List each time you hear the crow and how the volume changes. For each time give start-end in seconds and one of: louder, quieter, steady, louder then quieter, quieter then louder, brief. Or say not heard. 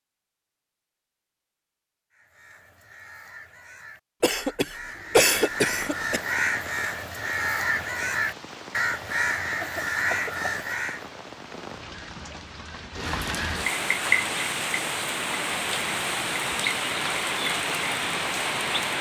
2.1-11.1 louder.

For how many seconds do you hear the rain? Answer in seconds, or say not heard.
14 s.